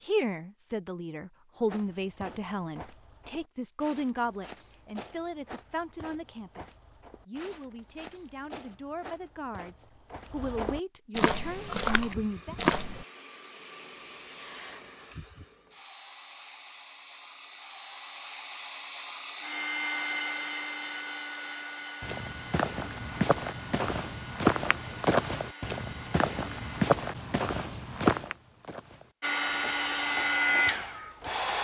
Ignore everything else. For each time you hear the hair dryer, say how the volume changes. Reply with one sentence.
The hair dryer can be heard from 11.2 to 26.9 s, getting louder then quieter; and briefly from 29.2 to 31.5 s.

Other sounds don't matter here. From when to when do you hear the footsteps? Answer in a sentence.
The footsteps can be heard from 1.6 to 13.1 s and from 22.0 to 31.5 s.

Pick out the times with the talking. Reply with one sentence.
You can hear the talking from 0.0 to 12.6 s.